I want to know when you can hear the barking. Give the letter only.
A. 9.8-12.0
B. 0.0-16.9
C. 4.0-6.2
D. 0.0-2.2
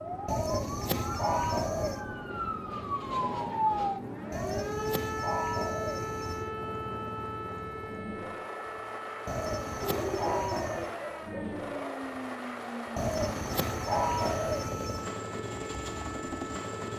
A.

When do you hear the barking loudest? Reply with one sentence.
The volume of the barking peaks at 10 seconds.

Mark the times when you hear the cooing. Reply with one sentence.
You can hear the cooing from 0.2 to 2.0 s, from 4.3 to 6.5 s, from 9.2 to 10.9 s and from 12.9 to 15.1 s.